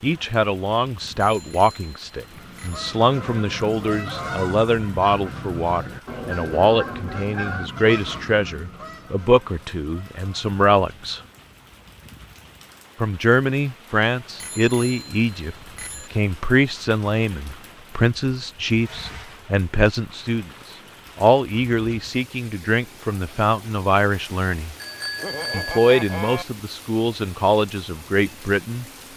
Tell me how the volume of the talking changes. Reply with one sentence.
The loudness of the talking stays about the same.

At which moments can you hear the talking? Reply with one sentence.
The talking can be heard from 0.0 to 11.2 s, from 13.0 to 20.5 s, from 21.1 to 24.8 s and from 25.5 to 28.9 s.